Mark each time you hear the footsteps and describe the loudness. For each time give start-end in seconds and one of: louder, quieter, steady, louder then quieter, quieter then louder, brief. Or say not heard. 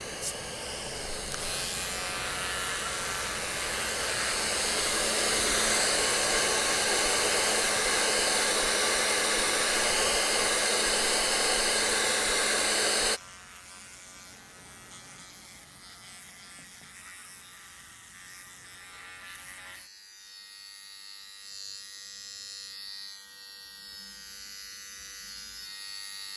not heard.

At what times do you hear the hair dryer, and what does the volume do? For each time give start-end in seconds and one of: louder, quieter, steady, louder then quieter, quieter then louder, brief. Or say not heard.
0.0-13.2 louder.